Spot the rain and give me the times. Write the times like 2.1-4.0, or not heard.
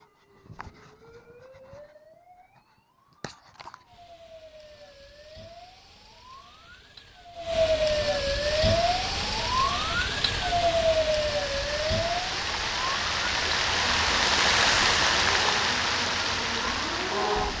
8.7-17.5.